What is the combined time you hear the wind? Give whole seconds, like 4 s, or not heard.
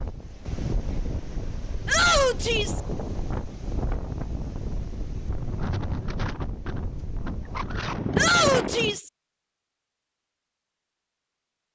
9 s.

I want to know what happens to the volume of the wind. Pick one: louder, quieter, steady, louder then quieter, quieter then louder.
louder.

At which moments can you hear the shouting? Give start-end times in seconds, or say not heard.
1.9-2.8, 8.2-9.1.